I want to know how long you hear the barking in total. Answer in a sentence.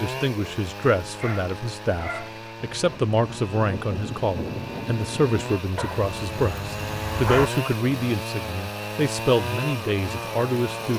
You can hear the barking for 3 seconds altogether.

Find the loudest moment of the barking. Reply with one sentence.
The loudest moment of the barking is at 7 seconds.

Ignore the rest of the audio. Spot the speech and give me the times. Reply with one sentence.
You can hear the speech from 0.0 to 10.9 s.